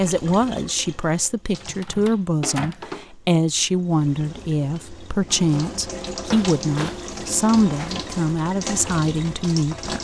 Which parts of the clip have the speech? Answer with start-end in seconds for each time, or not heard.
0.0-9.9.